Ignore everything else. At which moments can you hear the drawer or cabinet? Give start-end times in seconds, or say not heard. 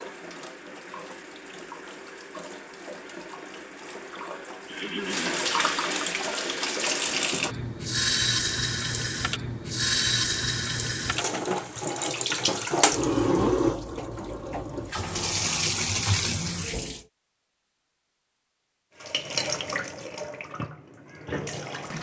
not heard.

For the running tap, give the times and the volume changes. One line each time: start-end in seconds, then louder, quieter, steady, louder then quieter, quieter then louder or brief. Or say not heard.
0.0-17.1 louder
19.0-21.9 brief.